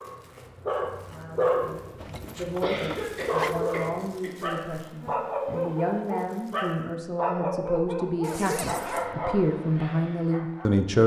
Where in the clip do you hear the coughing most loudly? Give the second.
3 s.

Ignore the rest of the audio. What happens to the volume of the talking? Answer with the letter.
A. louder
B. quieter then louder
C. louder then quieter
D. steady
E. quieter
A.